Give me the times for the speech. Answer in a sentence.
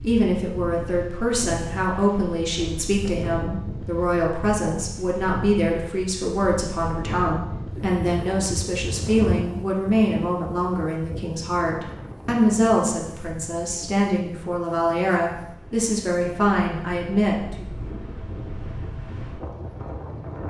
You can hear the speech from 0.0 to 17.7 s.